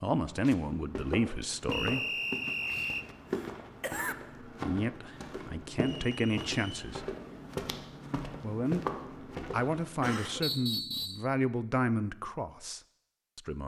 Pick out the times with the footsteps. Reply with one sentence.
The footsteps can be heard from 0.2 to 10.6 s.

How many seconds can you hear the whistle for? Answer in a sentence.
You can hear the whistle for 3 seconds altogether.